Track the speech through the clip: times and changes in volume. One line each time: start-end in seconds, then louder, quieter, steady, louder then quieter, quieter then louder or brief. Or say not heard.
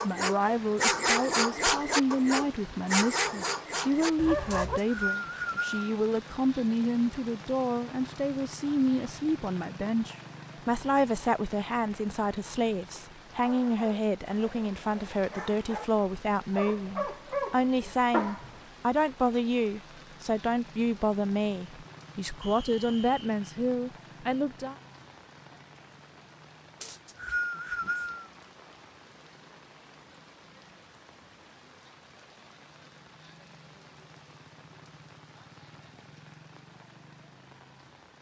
0.0-24.8 steady.